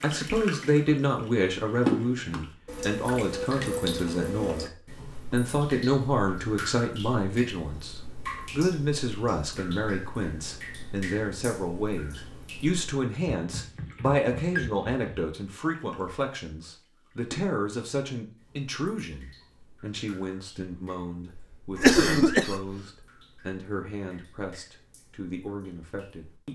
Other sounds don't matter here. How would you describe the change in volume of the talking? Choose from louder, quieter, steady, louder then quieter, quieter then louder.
quieter.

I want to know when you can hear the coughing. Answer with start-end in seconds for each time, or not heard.
21.4-22.8.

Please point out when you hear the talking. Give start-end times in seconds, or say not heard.
0.0-26.5.